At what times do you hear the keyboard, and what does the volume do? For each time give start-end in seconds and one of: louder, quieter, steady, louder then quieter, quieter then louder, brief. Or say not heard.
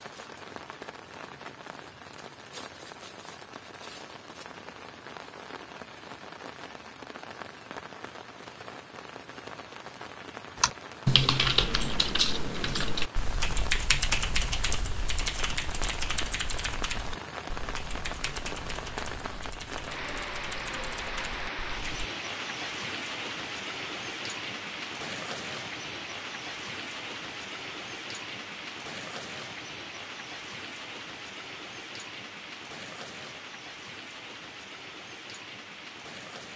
10.6-21.9 quieter.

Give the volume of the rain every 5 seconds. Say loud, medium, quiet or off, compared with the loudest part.
medium, medium, medium, loud, loud, loud, medium, medium.